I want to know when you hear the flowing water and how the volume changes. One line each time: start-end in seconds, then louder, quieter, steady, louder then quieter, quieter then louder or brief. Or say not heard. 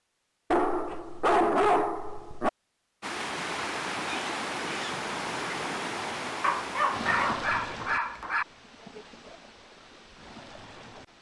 3.0-11.1 quieter.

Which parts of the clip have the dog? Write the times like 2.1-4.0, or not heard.
0.5-2.5, 6.4-8.4.